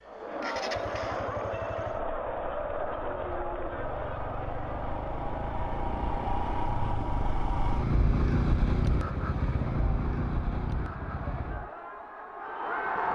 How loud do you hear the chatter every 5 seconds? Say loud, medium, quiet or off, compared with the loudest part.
loud, medium, loud.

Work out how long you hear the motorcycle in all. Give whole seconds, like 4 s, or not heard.
12 s.